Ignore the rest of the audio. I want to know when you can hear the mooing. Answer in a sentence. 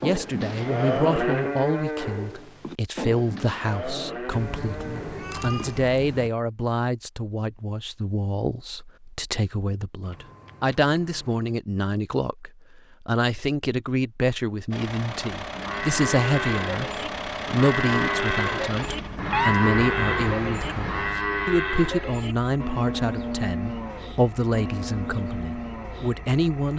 The mooing can be heard from 0.0 to 5.8 s and from 15.6 to 26.1 s.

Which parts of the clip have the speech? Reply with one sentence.
You can hear the speech from 0.0 to 26.7 s.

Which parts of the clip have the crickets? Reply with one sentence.
The crickets can't be heard in this clip.